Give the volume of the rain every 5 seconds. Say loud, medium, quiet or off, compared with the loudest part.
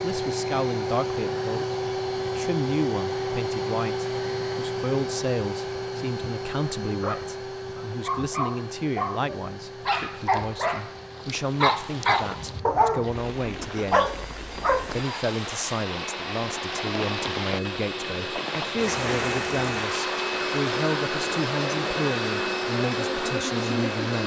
off, off, medium, loud, loud.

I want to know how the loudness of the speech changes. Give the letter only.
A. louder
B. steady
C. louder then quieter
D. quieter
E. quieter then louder
B.